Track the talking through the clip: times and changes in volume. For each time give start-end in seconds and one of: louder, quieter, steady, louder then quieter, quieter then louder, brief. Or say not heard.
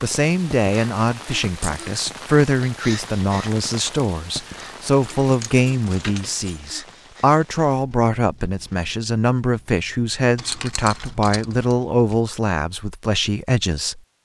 0.0-14.0 steady.